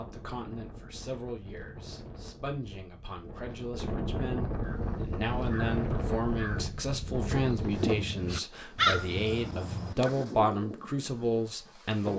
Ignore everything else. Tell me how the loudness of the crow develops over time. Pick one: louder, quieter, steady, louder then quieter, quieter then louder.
louder then quieter.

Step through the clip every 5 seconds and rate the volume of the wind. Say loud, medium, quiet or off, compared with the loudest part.
medium, loud, medium.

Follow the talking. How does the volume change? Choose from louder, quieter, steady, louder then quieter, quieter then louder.
louder.